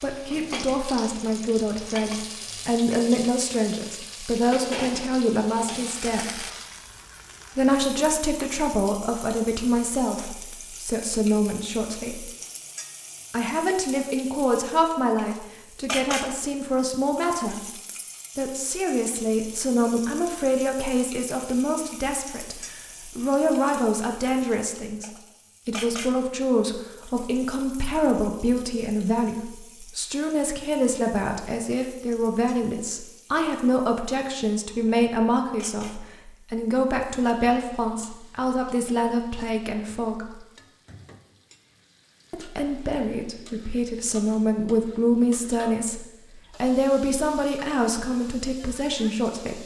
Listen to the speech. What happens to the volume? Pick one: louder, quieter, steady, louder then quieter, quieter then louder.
steady.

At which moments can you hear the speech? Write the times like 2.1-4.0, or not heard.
0.0-6.4, 7.5-12.3, 13.3-17.6, 18.4-40.4, 42.3-46.0, 46.6-49.6.